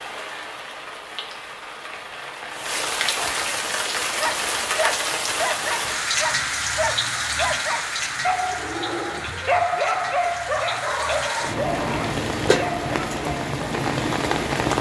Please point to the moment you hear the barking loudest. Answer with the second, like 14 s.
10 s.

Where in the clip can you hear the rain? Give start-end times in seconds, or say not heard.
0.0-14.7.